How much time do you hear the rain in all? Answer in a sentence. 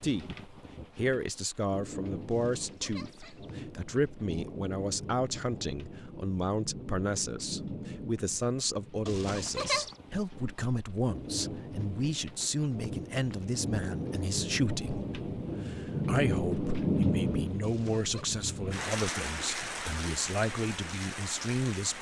The rain can be heard for 22 seconds in total.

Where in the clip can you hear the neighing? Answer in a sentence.
You can hear the neighing from 2.3 to 3.6 s, from 9.1 to 9.9 s and from 17.6 to 18.2 s.